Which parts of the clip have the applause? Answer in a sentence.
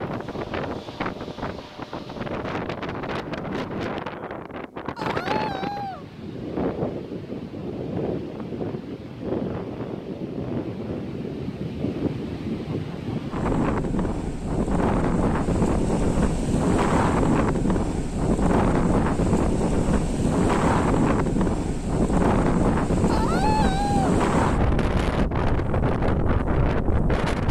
You can't hear the applause here.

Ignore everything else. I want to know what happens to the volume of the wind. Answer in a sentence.
The loudness of the wind goes up.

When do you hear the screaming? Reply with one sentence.
The screaming can be heard from 5.0 to 6.0 s and from 23.1 to 24.2 s.